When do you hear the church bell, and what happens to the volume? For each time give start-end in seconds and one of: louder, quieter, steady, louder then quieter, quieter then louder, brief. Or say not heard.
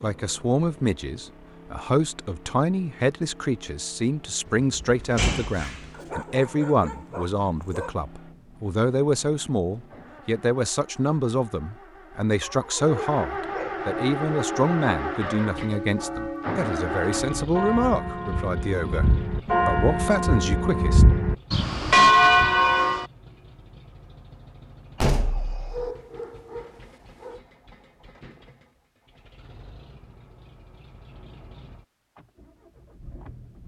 13.8-23.1 louder.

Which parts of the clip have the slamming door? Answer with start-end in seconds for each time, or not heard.
4.5-5.9, 25.0-25.9.